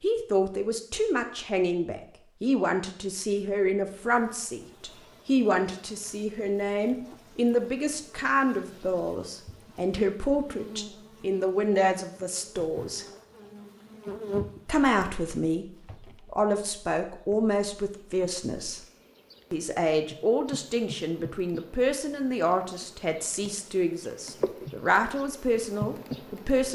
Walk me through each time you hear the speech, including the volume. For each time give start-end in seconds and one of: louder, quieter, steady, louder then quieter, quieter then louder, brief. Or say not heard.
0.0-13.1 steady
14.7-15.7 brief
16.3-18.8 brief
19.5-26.6 steady.